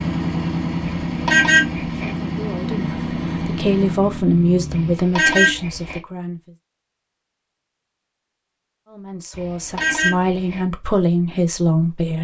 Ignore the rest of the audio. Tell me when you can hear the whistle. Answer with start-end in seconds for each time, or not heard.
not heard.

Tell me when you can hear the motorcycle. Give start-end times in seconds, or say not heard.
0.0-5.0.